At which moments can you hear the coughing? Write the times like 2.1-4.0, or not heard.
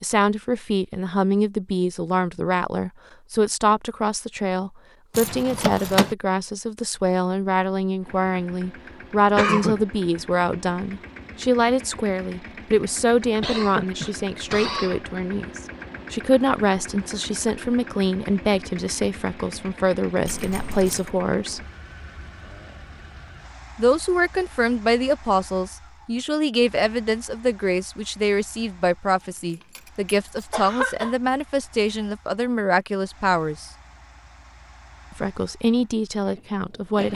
9.3-9.8, 13.4-15.0, 30.5-31.1.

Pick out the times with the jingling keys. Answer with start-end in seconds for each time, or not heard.
5.1-6.2, 20.2-21.1, 29.5-30.4.